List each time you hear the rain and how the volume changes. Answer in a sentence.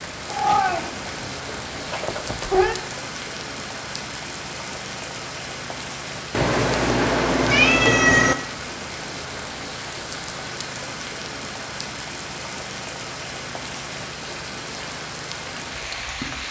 You can hear the rain from 0.0 to 16.4 s, at a steady volume.